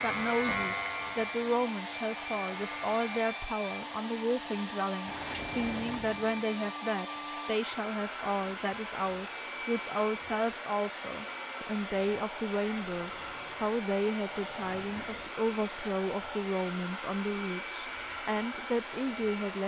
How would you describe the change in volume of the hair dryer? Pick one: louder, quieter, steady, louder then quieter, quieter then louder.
steady.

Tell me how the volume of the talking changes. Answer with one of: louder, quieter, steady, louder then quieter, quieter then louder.
steady.